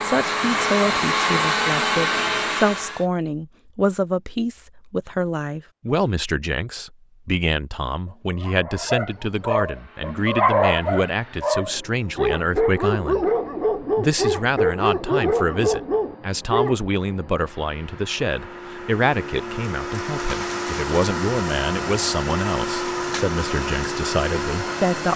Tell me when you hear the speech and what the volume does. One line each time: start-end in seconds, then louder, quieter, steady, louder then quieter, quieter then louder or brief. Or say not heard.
0.0-25.1 steady.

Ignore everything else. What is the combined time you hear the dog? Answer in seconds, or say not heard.
9 s.